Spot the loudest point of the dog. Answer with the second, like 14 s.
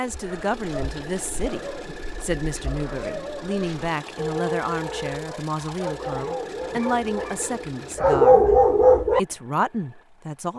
8 s.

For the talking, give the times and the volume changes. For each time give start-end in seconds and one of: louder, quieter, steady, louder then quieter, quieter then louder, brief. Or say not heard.
0.0-10.5 steady.